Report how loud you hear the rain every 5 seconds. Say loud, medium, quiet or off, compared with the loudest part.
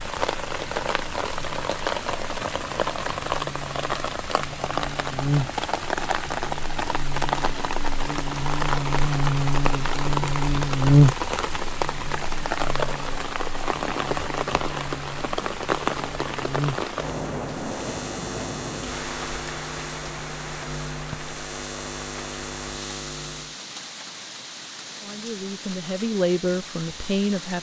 loud, loud, loud, loud, medium, medium.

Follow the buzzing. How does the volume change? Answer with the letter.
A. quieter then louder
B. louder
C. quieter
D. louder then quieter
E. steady
D.